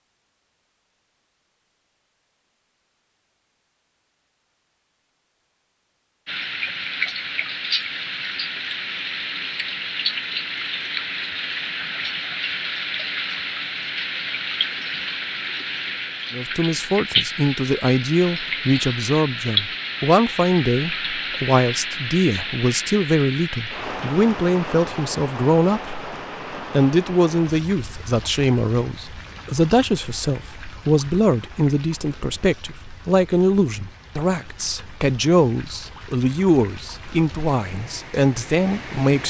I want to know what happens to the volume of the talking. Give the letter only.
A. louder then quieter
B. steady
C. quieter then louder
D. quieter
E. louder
B.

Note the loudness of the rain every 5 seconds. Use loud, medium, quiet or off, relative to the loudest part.
off, loud, loud, loud, loud, medium, quiet, quiet.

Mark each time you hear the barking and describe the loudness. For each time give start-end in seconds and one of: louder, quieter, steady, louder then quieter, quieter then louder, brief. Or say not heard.
not heard.